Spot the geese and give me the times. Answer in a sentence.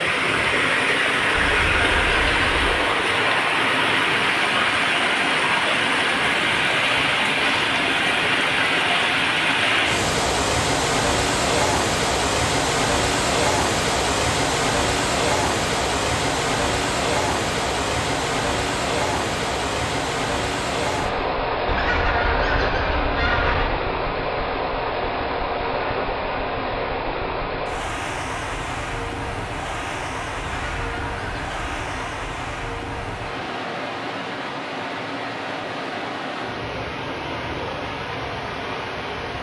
The geese can be heard from 1.3 to 2.9 s, from 21.6 to 23.8 s and from 30.4 to 31.9 s.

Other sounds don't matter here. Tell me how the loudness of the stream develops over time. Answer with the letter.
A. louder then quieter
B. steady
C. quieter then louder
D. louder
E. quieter
E.